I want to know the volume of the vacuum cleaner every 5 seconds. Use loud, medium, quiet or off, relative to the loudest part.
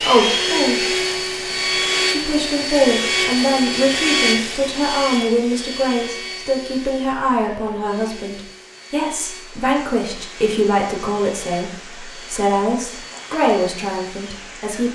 loud, quiet, quiet.